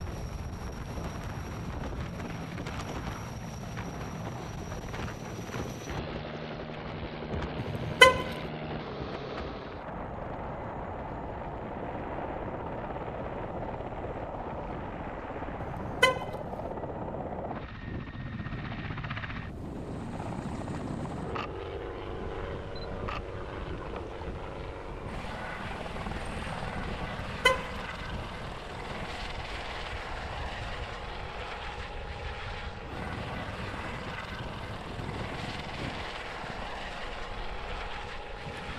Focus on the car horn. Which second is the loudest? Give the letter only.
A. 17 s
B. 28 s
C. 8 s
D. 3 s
C.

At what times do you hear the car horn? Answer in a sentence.
The car horn can be heard from 7.5 to 8.3 s, from 15.6 to 16.7 s and from 27.0 to 28.2 s.